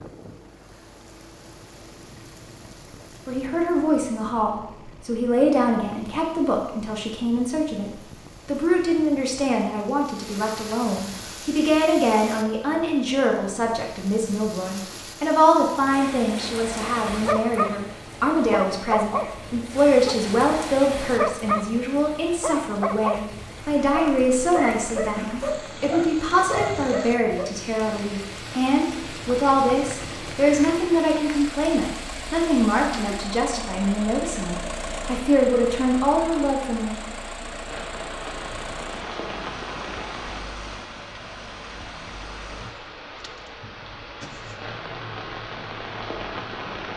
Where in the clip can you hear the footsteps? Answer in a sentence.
You can't hear the footsteps here.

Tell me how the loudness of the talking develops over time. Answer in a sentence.
The volume of the talking stays about the same.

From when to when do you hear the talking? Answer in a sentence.
The talking can be heard from 3.2 to 37.0 s.